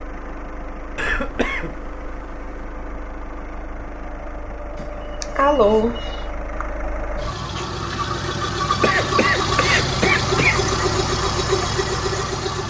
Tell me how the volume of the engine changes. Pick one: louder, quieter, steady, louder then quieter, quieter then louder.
louder.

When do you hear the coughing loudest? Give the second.
6 s.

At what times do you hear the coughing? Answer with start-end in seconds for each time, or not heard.
0.9-2.5, 4.8-6.2, 8.8-10.6.